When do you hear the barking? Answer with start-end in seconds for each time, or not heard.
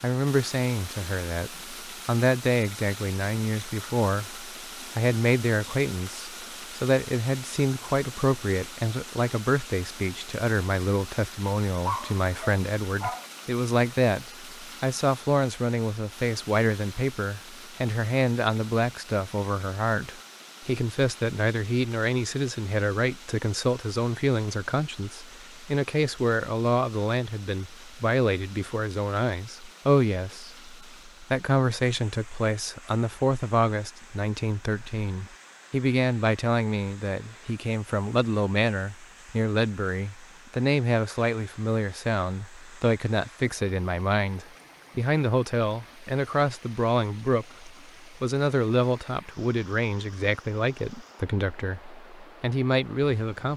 11.8-13.2.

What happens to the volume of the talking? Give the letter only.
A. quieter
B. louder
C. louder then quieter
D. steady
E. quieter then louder
D.